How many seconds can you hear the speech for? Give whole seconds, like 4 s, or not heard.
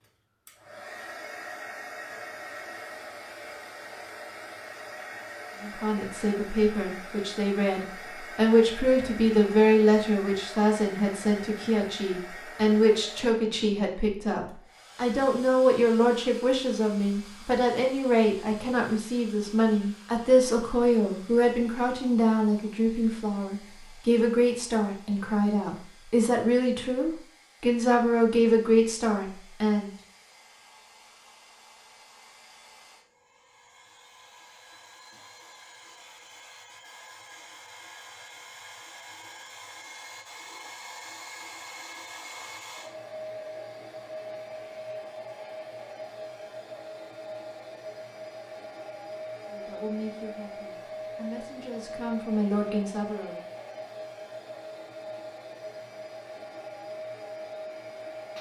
28 s.